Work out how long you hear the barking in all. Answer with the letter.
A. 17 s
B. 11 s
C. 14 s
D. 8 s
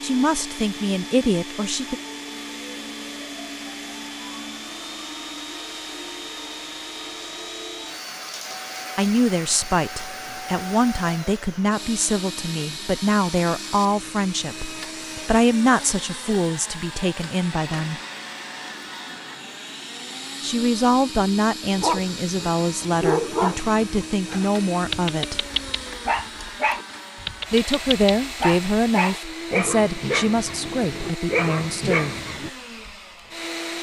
B.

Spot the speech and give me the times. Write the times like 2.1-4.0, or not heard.
0.0-1.9, 8.9-18.0, 20.4-25.4, 27.5-32.1.